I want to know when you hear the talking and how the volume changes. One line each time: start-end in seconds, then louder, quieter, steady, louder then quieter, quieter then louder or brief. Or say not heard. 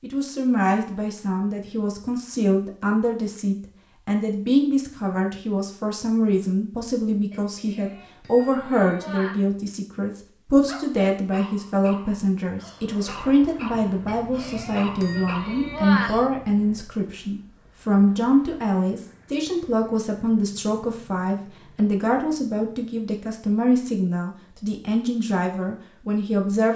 0.0-26.7 steady.